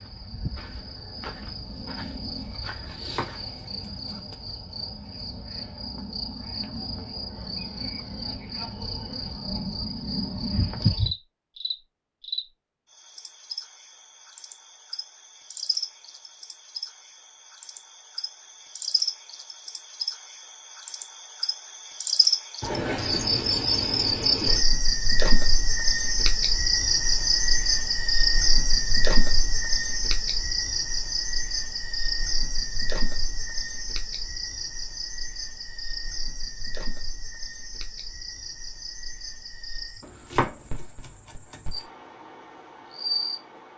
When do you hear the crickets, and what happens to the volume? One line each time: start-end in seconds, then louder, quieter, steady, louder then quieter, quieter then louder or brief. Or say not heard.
0.0-43.7 louder then quieter.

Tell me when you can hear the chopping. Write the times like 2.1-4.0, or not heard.
3.0-4.3, 40.0-41.6.